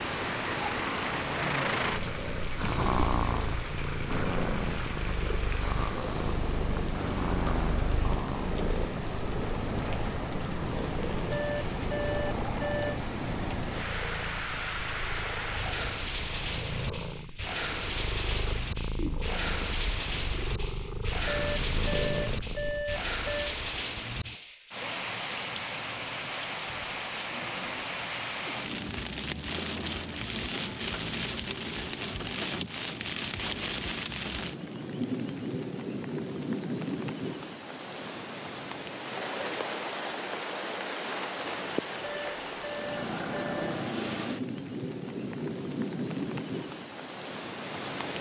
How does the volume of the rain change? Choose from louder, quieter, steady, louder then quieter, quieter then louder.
steady.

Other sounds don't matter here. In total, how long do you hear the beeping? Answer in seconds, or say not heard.
6 s.